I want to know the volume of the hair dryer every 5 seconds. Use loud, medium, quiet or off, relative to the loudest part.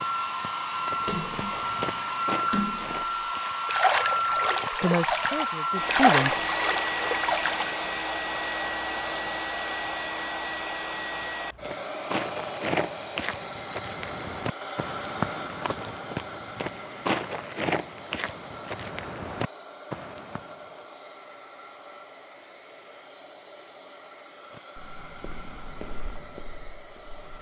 loud, loud, medium, medium, quiet, quiet.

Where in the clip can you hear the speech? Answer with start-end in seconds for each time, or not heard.
4.8-6.3.